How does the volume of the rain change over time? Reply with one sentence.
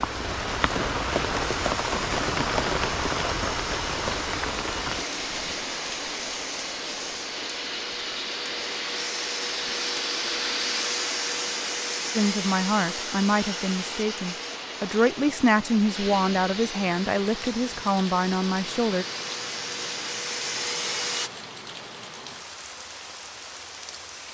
The volume of the rain goes down.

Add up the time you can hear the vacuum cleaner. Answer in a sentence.
The vacuum cleaner can be heard for 21 seconds in total.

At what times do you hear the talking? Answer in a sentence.
The talking can be heard from 12.2 to 19.1 s.